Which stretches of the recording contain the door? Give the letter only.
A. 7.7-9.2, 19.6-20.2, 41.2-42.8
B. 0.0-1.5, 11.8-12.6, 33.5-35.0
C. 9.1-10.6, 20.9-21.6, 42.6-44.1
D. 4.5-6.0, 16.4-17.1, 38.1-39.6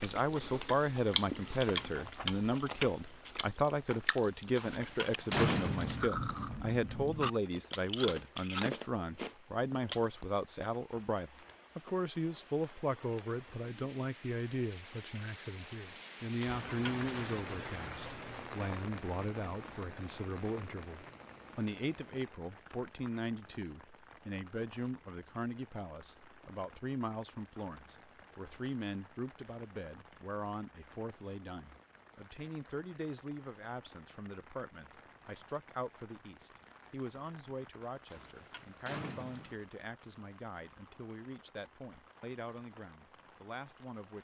D.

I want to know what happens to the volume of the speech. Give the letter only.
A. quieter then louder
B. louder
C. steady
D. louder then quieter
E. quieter
E.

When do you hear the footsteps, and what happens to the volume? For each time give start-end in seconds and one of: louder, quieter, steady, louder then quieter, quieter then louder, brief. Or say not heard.
not heard.